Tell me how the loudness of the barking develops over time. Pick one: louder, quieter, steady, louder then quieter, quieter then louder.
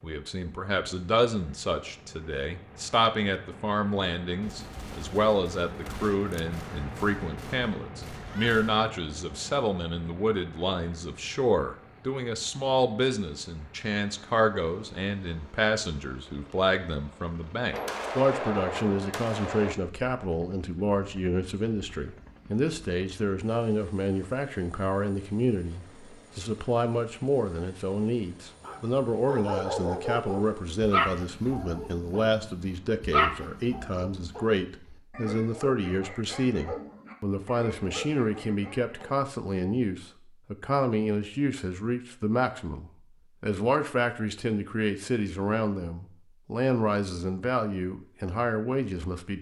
quieter.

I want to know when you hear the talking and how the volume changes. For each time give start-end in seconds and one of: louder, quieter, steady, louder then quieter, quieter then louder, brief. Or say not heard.
0.0-49.3 steady.